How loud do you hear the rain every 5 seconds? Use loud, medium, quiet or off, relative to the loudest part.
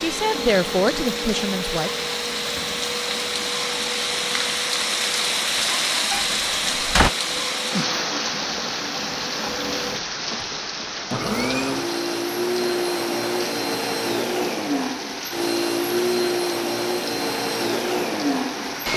loud, loud, medium, medium.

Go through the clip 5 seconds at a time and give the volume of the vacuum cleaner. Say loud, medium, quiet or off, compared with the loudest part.
medium, medium, loud, loud.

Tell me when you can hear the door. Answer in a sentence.
You can hear the door from 6.1 to 7.1 s.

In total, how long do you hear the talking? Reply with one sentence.
The talking can be heard for 2 seconds in total.